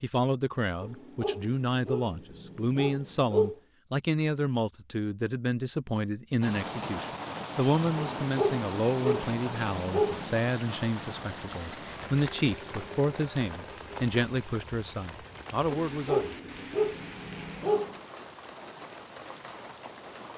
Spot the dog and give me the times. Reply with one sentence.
You can hear the dog from 0.8 to 3.5 s, from 8.0 to 10.3 s and from 15.7 to 17.9 s.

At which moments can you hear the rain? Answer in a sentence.
The rain can be heard from 6.4 to 20.3 s.